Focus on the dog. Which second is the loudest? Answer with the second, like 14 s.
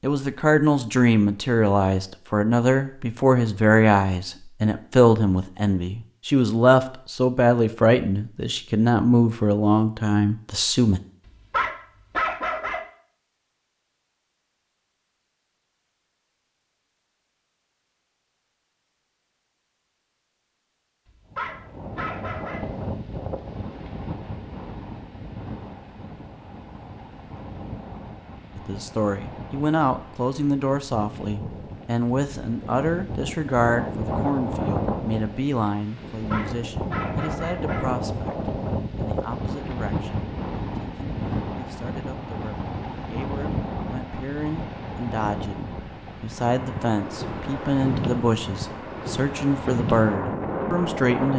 12 s.